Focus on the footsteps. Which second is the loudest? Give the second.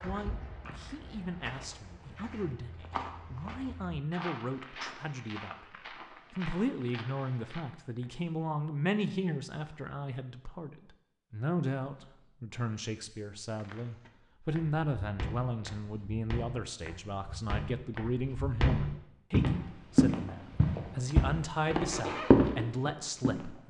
22 s.